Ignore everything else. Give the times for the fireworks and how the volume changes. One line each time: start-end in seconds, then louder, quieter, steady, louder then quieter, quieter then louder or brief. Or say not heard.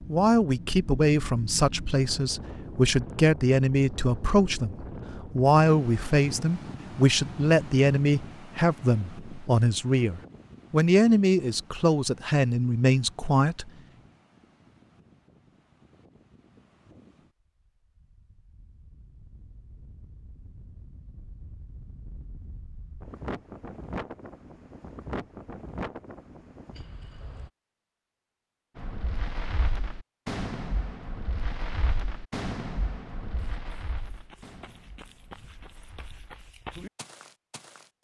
28.8-36.4 quieter.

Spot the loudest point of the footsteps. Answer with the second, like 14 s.
37 s.